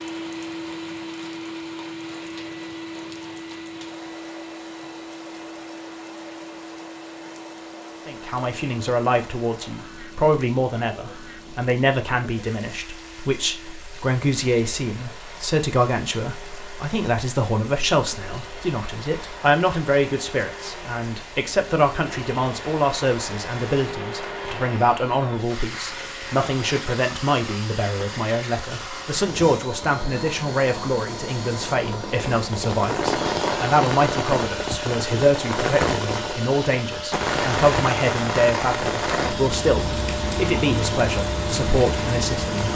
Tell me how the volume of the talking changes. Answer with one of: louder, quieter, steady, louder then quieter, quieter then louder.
steady.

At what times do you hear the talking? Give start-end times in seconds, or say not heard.
8.1-42.6.